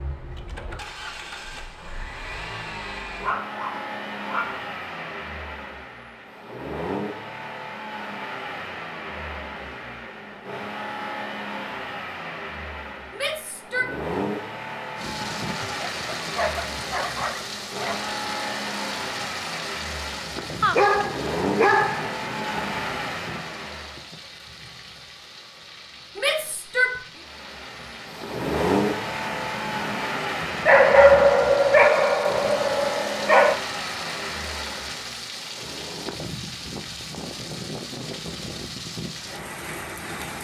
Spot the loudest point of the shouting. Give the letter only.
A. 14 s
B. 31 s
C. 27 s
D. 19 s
C.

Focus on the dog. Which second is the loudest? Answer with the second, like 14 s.
31 s.